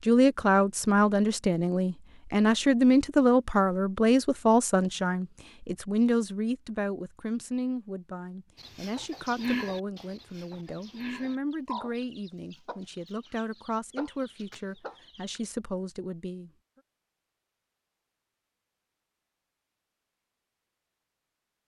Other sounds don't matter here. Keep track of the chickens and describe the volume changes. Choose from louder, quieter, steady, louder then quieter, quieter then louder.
quieter then louder.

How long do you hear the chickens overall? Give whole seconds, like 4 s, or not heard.
7 s.